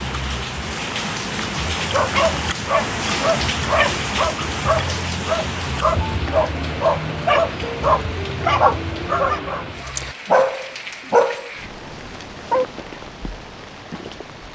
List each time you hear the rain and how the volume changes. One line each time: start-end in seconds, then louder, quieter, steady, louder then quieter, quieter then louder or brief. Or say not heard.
0.0-14.5 quieter.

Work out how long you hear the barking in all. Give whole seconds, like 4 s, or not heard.
11 s.